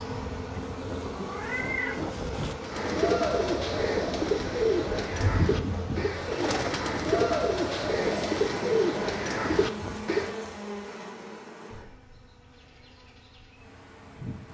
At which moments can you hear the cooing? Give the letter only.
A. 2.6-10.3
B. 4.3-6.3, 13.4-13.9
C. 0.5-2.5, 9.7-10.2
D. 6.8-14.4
A.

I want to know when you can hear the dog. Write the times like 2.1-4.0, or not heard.
not heard.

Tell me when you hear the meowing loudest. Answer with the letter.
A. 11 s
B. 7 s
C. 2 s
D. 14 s
C.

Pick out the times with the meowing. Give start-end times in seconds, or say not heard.
0.5-2.5, 9.7-10.2.